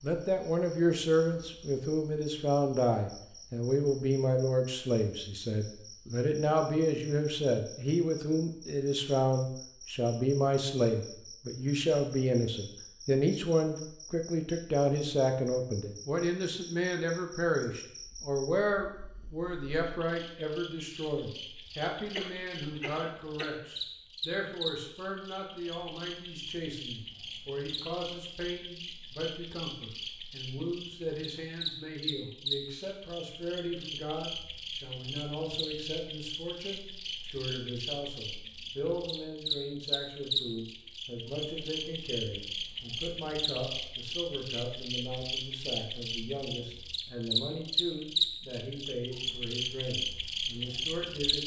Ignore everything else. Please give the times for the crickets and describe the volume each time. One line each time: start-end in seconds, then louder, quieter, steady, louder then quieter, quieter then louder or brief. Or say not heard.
0.0-51.4 louder.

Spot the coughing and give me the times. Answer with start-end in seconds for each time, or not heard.
22.1-23.6.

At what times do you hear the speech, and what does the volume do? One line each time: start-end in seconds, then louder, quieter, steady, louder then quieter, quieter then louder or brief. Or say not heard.
0.0-51.4 quieter.